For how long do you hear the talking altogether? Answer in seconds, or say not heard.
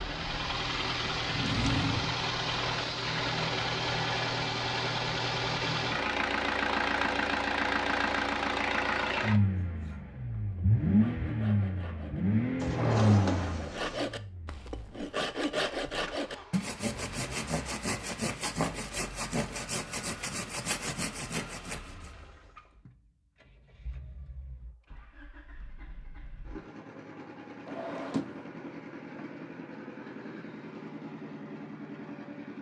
not heard.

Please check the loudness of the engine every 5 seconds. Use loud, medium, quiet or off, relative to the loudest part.
loud, loud, loud, quiet, quiet, quiet, quiet.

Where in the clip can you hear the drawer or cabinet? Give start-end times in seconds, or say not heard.
1.2-2.2, 12.6-14.1, 27.6-28.4.